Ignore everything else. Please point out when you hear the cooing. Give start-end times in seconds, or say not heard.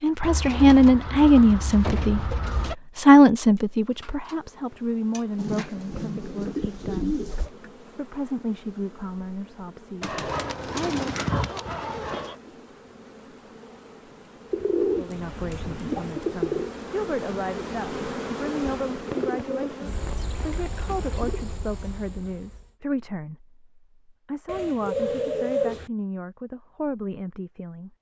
0.2-2.8, 5.3-7.5, 10.0-12.3, 14.5-16.7, 19.1-21.4, 24.4-25.9.